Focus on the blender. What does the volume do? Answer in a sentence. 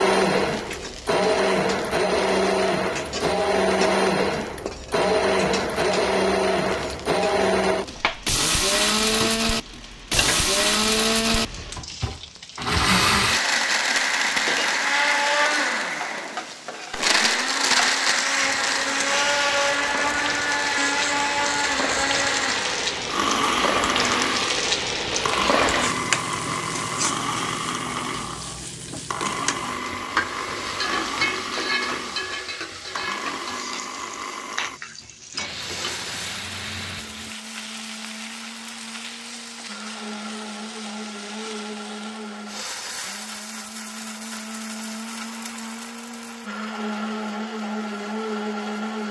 The volume of the blender goes down.